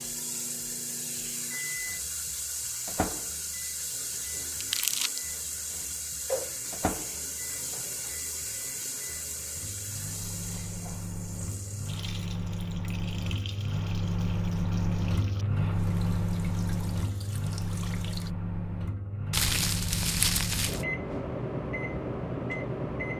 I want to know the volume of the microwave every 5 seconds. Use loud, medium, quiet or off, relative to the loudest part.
medium, quiet, loud, loud, loud.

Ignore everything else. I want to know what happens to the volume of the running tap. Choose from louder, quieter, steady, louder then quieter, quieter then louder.
quieter.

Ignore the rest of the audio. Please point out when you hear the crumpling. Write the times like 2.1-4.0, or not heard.
4.6-5.2, 19.3-20.9.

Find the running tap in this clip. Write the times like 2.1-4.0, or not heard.
0.0-18.3.